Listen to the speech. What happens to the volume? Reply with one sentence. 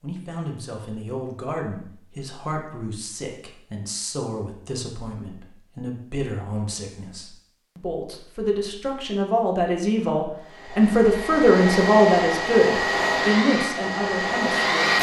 The volume of the speech goes up.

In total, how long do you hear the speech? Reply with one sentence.
The speech can be heard for 15 seconds in total.